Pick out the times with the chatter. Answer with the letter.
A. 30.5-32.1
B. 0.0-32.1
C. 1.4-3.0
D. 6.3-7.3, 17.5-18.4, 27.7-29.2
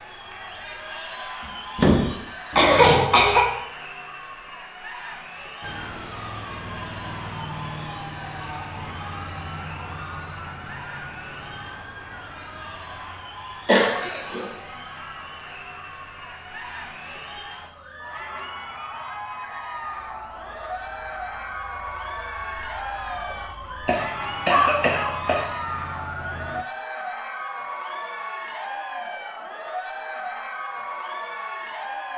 B.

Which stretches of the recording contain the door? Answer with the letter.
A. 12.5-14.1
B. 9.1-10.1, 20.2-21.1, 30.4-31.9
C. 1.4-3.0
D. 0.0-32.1
C.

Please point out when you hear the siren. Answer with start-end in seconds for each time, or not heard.
5.6-26.6.